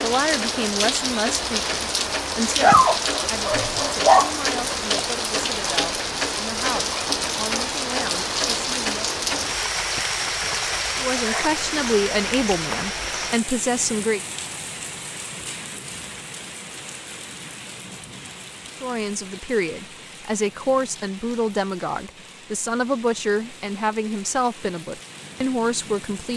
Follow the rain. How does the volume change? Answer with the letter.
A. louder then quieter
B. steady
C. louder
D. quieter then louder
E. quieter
E.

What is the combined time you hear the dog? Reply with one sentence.
You can hear the dog for 2 seconds altogether.